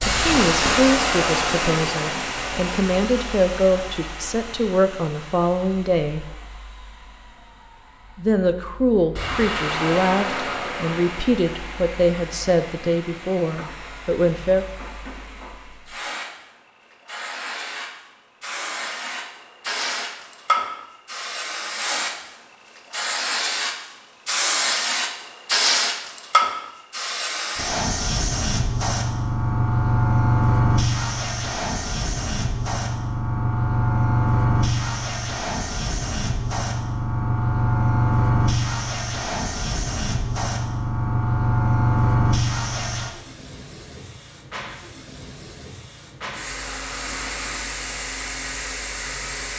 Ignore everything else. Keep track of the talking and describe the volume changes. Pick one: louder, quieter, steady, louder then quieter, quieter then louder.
steady.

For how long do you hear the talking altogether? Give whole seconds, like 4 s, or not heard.
13 s.